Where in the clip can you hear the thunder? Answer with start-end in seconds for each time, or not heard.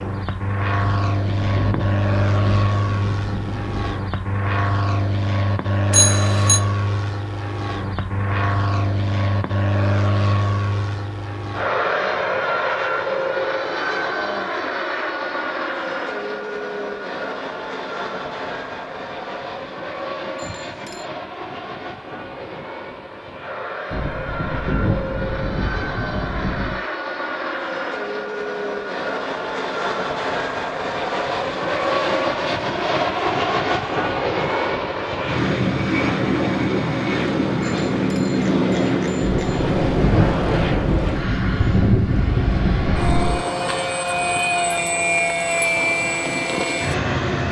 0.8-4.0, 23.9-26.8, 39.2-43.4.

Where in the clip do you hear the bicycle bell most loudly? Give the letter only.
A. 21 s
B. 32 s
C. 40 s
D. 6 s
D.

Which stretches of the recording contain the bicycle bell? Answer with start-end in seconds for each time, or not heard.
5.9-6.6, 20.4-21.1, 37.6-39.7.